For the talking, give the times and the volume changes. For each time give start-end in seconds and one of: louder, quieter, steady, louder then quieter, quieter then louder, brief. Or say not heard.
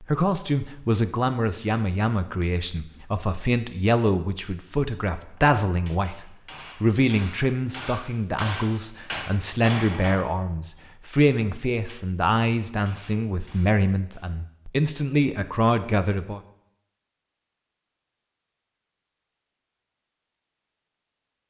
0.0-16.4 steady.